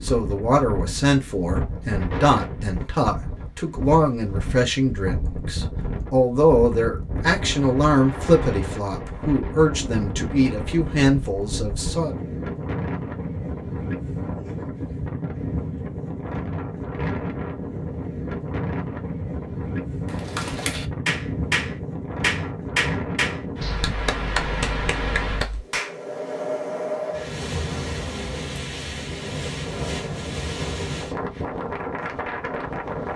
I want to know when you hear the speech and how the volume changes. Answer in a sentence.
The speech can be heard from 0.0 to 12.2 s, at a steady volume.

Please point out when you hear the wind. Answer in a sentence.
You can hear the wind from 0.0 to 33.1 s.